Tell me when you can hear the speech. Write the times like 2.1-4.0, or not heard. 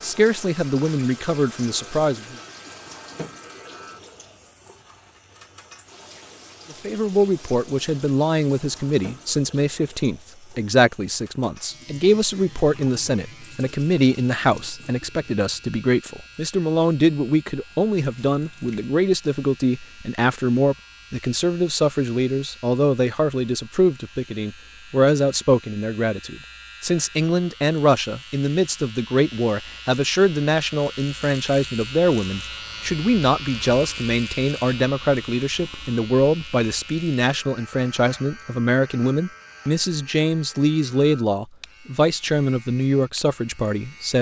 0.0-2.4, 6.7-44.1.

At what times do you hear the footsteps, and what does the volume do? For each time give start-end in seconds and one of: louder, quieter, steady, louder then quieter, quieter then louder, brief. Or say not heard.
not heard.